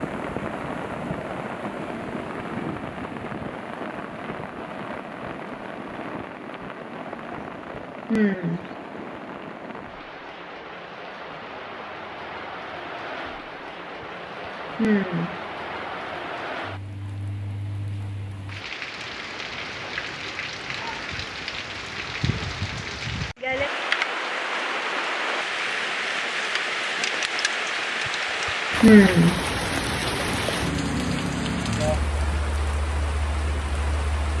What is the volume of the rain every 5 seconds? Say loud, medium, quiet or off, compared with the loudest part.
medium, medium, medium, medium, loud, loud, loud.